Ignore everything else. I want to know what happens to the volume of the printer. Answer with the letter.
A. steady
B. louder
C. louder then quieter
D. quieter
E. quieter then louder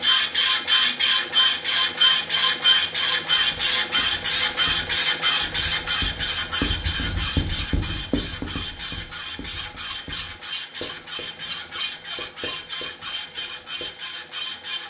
D.